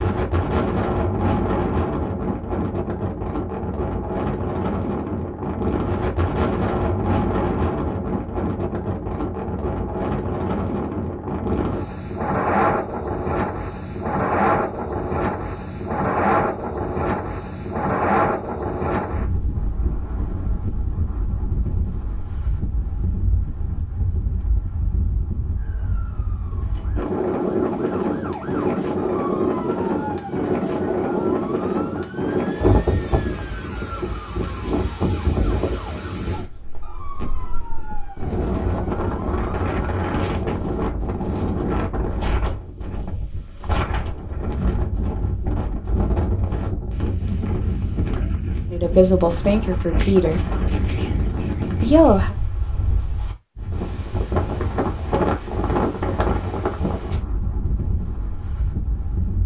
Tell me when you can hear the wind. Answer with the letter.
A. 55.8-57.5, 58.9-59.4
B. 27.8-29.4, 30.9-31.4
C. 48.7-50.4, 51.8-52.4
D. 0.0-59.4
D.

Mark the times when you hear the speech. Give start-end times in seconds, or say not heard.
48.7-50.4, 51.8-52.4.